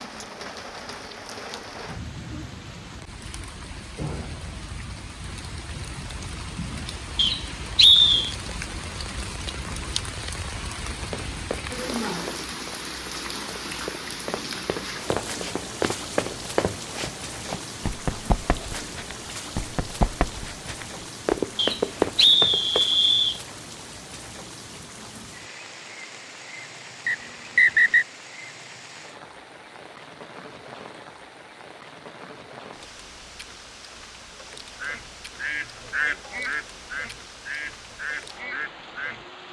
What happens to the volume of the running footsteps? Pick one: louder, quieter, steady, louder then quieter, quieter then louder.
louder.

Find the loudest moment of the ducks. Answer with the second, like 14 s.
36 s.